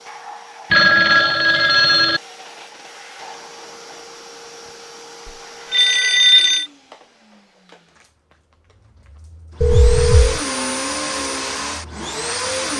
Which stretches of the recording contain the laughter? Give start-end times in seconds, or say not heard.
not heard.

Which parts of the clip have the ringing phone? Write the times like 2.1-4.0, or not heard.
0.7-2.2, 5.2-6.7, 9.6-10.4.